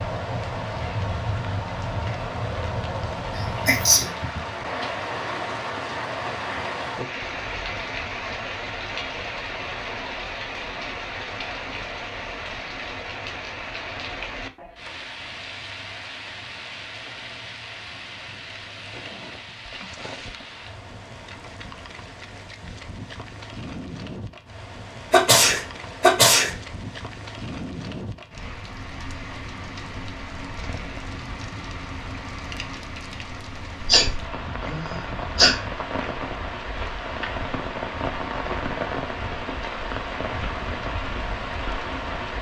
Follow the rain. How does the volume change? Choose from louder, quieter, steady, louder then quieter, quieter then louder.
quieter then louder.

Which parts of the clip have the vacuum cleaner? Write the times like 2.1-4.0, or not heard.
not heard.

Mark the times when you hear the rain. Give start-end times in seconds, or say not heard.
0.0-42.3.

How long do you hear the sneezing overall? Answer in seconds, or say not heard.
4 s.